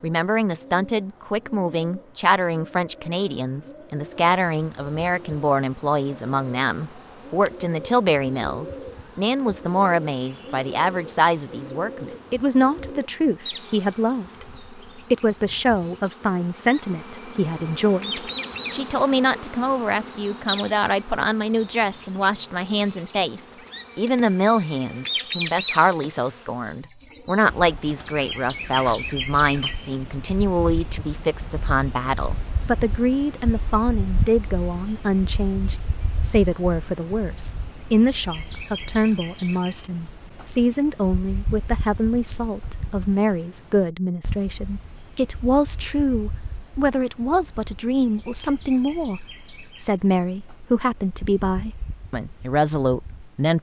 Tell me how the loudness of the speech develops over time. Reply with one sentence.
The loudness of the speech stays about the same.